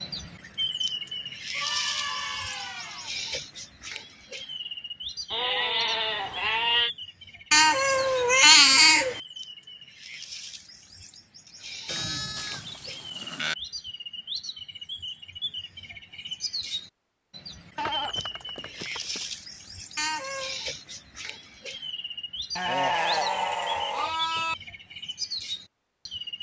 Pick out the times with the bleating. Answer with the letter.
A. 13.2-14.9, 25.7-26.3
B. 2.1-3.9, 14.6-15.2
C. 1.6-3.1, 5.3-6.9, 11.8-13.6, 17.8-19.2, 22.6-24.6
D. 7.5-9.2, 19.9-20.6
C.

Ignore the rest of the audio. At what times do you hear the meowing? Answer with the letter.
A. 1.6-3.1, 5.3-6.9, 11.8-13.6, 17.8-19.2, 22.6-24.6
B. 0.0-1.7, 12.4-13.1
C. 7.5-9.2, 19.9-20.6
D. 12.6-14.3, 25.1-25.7
C.